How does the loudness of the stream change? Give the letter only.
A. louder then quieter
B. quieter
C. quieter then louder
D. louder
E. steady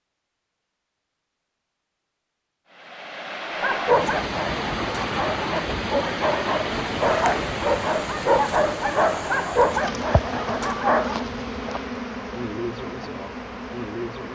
B.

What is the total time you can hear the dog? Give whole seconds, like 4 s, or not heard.
8 s.